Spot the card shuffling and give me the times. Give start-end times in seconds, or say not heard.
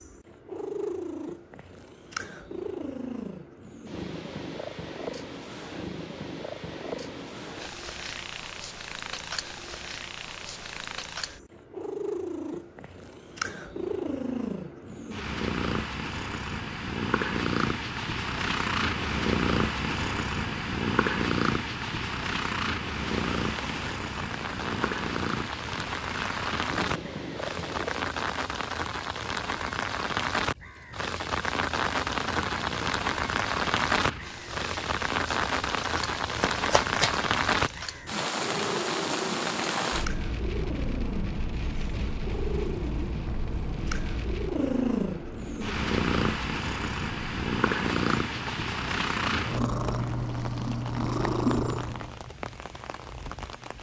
36.4-37.1.